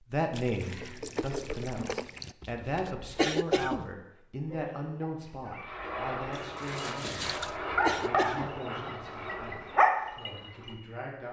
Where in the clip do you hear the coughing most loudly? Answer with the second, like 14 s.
3 s.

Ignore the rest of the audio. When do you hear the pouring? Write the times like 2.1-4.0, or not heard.
0.3-2.4, 6.3-7.5.